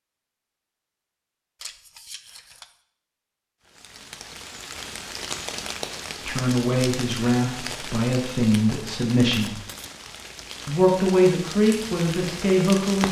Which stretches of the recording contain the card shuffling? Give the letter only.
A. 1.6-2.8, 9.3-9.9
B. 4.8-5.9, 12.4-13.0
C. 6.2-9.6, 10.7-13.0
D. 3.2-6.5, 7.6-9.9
A.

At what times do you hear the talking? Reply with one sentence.
The talking can be heard from 6.2 to 9.6 s and from 10.7 to 13.0 s.